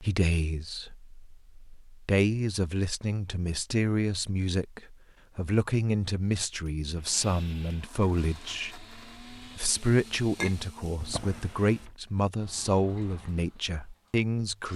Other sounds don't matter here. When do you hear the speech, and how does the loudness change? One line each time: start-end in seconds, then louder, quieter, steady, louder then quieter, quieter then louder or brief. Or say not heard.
0.0-14.7 steady.